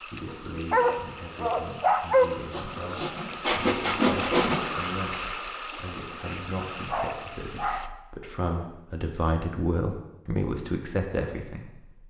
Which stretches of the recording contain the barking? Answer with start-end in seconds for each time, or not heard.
0.7-2.2, 6.8-8.0.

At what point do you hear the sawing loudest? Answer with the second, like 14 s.
4 s.